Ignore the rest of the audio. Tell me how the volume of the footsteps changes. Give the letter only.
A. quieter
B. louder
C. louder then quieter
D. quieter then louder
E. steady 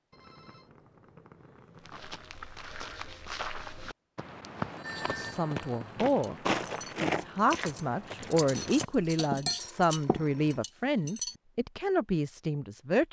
C.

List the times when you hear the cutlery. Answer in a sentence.
The cutlery can be heard from 6.0 to 11.3 s.